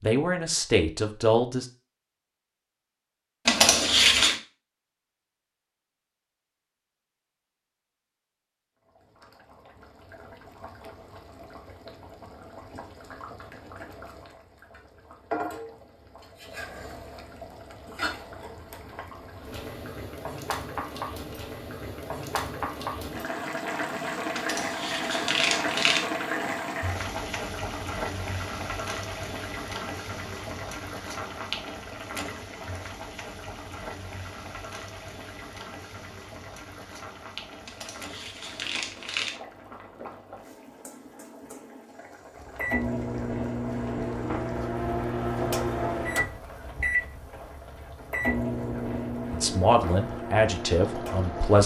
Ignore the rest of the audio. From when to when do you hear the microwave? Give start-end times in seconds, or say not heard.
42.4-51.6.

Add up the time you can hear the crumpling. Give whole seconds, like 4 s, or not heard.
4 s.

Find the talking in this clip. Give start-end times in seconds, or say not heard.
0.0-1.6, 49.3-51.6.